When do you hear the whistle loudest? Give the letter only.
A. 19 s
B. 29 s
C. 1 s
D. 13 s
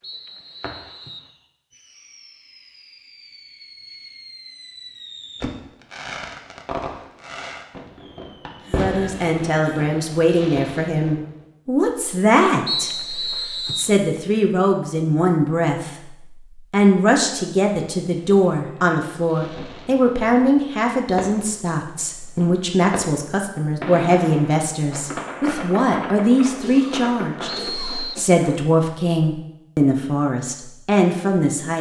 D.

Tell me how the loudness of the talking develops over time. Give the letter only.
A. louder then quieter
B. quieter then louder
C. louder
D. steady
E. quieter
D.